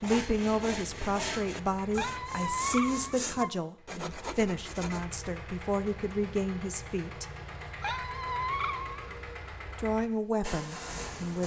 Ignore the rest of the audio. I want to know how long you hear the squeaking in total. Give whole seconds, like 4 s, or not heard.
3 s.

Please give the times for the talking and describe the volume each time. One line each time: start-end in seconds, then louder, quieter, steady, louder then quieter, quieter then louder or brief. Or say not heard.
0.0-7.2 steady
9.8-11.4 brief.